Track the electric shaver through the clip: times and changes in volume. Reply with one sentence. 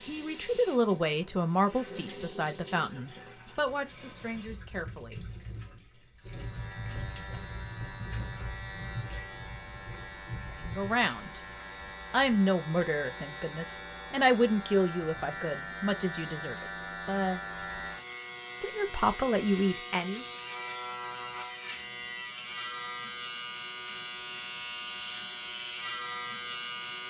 You can hear the electric shaver from 6.2 to 27.0 s, getting louder.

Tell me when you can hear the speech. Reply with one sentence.
You can hear the speech from 0.1 to 5.2 s, from 10.6 to 11.4 s, from 12.1 to 17.4 s and from 18.6 to 20.2 s.